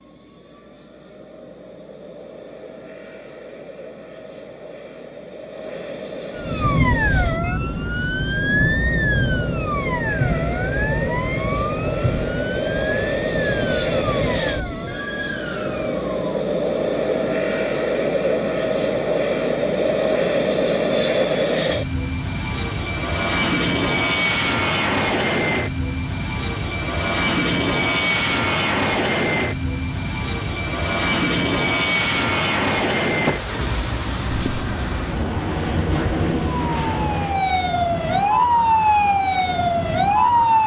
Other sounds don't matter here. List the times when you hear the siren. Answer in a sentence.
The siren can be heard from 6.3 to 16.2 s and from 34.5 to 40.6 s.